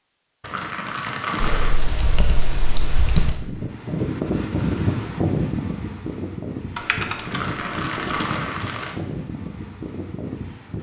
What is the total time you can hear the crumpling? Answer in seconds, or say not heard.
3 s.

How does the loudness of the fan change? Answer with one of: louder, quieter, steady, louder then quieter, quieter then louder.
quieter.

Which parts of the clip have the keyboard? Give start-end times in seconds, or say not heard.
1.4-3.4, 6.8-8.3.